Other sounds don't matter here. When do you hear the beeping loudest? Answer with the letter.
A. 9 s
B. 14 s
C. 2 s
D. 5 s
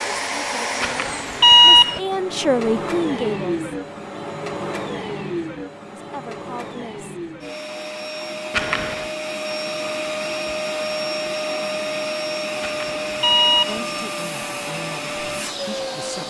C.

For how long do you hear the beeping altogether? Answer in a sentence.
You can hear the beeping for 3 seconds altogether.